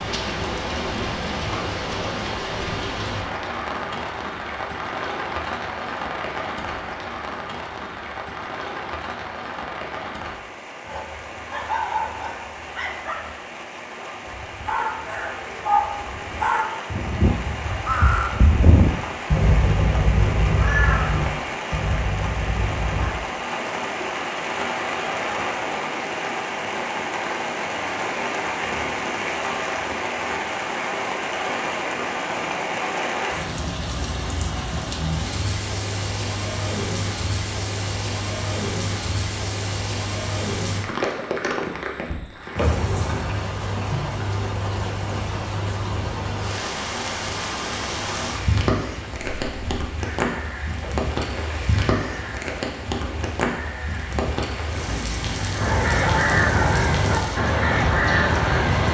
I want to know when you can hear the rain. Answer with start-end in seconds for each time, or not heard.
0.0-58.8.